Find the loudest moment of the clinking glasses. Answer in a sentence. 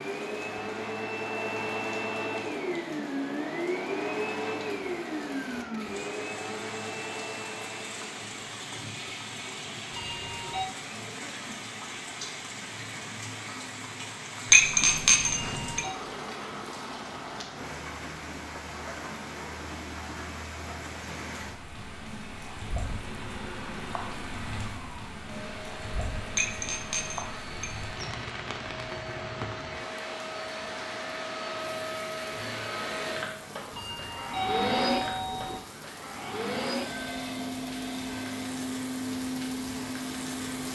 The loudest moment of the clinking glasses is at 15 seconds.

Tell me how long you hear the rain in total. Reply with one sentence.
You can hear the rain for 41 seconds altogether.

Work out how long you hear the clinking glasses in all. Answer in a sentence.
The clinking glasses can be heard for 3 seconds in total.